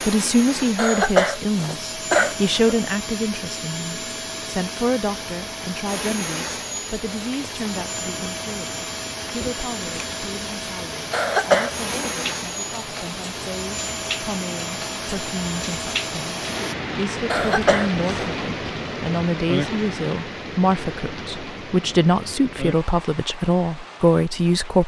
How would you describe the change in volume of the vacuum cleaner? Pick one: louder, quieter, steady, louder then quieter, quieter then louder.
steady.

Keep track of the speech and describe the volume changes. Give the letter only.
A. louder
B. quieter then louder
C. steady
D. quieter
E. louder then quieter
B.